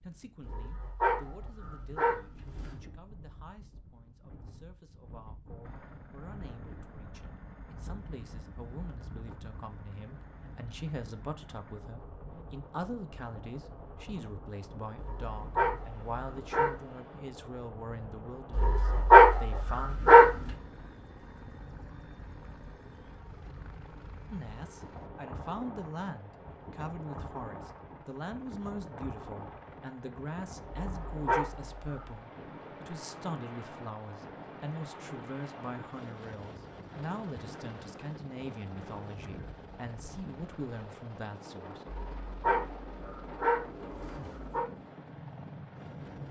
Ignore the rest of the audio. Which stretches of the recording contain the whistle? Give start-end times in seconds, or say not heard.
not heard.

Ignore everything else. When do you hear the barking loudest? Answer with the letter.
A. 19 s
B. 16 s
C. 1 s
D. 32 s
A.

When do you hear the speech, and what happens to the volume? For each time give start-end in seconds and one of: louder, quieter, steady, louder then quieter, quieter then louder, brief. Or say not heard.
0.0-19.9 louder
24.3-41.9 steady.